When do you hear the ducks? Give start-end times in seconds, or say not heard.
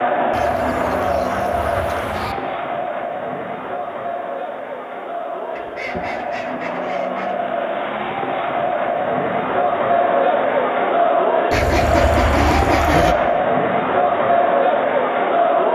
0.3-2.4, 5.5-7.3, 11.5-13.2.